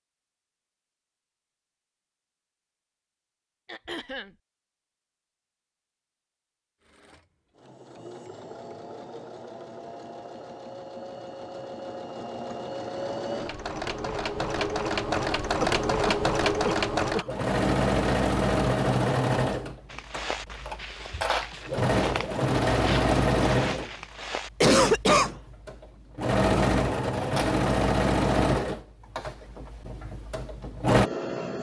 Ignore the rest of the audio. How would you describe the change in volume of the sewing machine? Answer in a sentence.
The loudness of the sewing machine goes up.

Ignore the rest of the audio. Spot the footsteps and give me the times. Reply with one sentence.
You can hear the footsteps from 19.9 to 24.7 s.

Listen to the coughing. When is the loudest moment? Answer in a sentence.
The loudest moment of the coughing is at 25 seconds.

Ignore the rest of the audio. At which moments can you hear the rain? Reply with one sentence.
You can't hear the rain here.